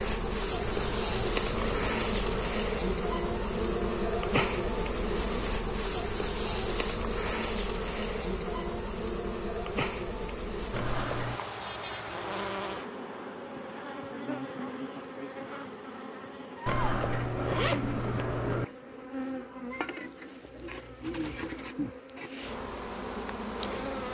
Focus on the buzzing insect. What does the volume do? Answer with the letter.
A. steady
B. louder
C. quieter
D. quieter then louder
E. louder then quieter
C.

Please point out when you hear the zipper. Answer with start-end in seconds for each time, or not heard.
0.6-2.5, 10.7-11.4, 16.6-18.6.